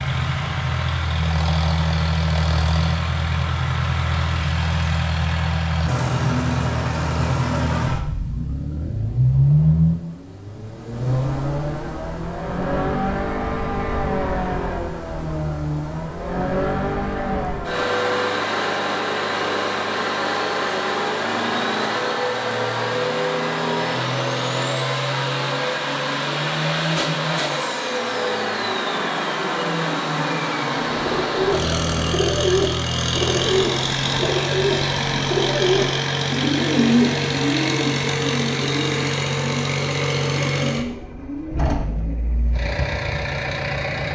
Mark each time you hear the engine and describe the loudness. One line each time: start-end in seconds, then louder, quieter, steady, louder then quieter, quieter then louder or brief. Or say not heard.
0.0-44.1 steady.